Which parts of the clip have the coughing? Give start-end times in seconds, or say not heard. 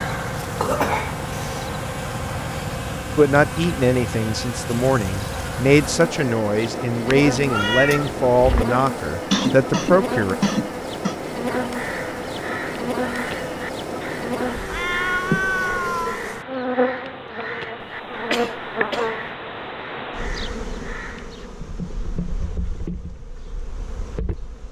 0.6-1.7, 9.3-11.2, 18.3-19.1.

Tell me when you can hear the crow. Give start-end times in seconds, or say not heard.
11.4-21.5.